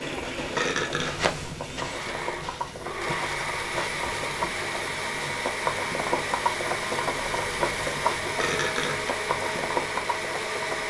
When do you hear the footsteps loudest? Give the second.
1 s.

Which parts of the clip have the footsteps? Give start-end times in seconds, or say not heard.
0.0-4.7.